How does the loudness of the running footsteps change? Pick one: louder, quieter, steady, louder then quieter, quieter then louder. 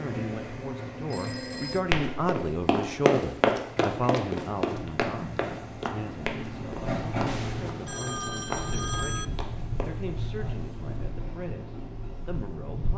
quieter.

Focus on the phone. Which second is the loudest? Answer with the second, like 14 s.
9 s.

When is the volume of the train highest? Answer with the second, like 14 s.
7 s.